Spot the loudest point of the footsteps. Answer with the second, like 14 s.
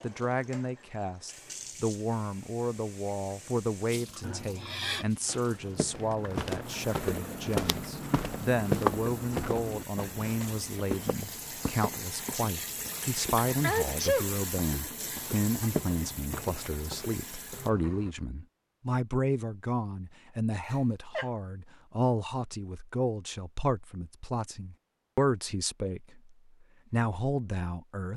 9 s.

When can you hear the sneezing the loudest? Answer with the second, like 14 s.
14 s.